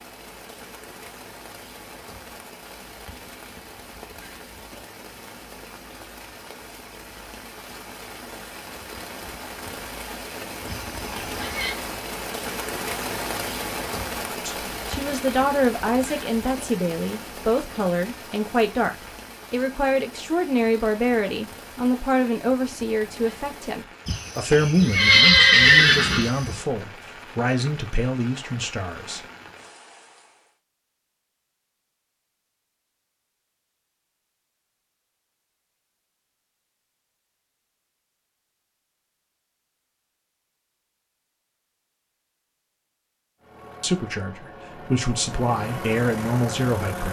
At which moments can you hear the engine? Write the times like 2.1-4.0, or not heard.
43.4-47.0.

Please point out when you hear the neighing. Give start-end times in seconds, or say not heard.
10.7-11.8, 24.1-26.6.